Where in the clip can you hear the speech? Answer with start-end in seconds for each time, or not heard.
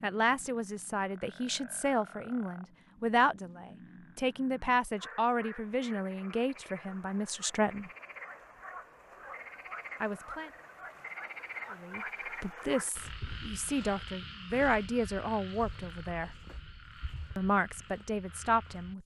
0.0-7.9, 10.0-10.5, 11.7-16.3, 17.4-19.0.